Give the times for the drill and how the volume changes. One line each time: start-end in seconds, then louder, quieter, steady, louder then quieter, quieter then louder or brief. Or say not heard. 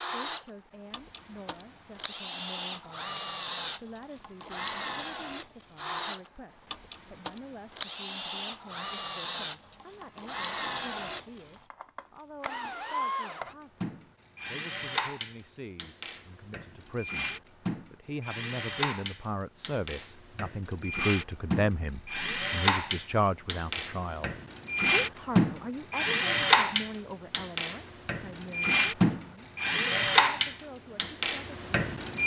0.0-32.2 louder.